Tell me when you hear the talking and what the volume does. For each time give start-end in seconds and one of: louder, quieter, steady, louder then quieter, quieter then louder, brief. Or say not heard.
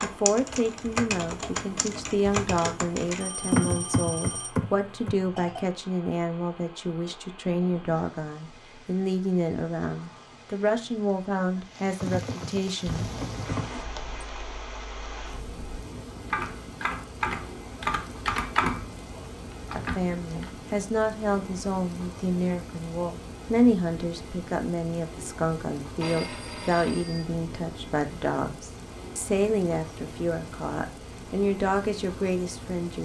0.0-13.1 steady
19.7-33.0 steady.